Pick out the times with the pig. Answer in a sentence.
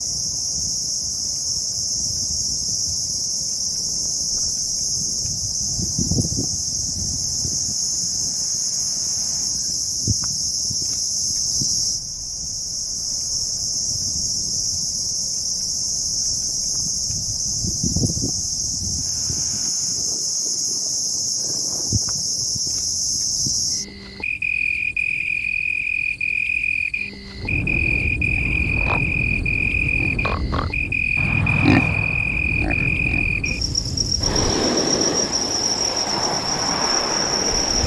The pig can be heard from 28.4 to 33.6 s.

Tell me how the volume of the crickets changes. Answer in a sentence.
The loudness of the crickets stays about the same.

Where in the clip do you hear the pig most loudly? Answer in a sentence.
The loudest moment of the pig is at 32 seconds.